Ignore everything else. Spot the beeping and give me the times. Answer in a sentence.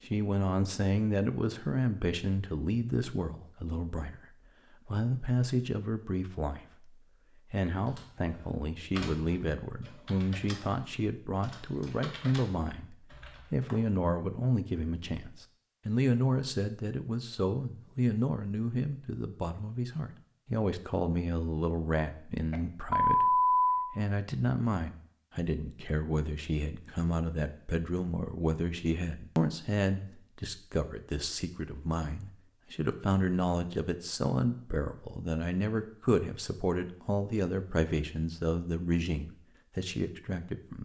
The beeping can be heard from 22.5 to 23.9 s.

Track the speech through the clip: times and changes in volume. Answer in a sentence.
You can hear the speech from 0.0 to 40.8 s, at a steady volume.